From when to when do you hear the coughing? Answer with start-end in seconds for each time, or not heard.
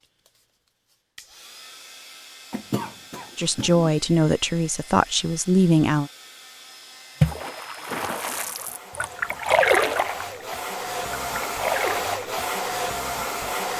2.5-3.9.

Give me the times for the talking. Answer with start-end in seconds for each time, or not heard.
3.4-6.1.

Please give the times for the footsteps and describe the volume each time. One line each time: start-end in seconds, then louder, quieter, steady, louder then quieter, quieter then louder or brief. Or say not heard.
not heard.